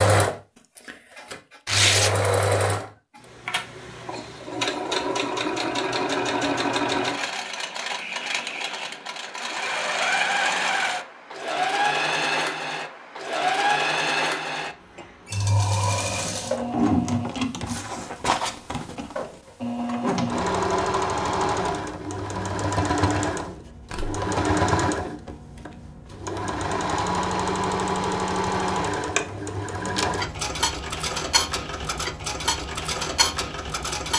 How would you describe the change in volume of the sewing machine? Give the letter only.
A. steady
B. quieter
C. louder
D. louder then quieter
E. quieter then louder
A.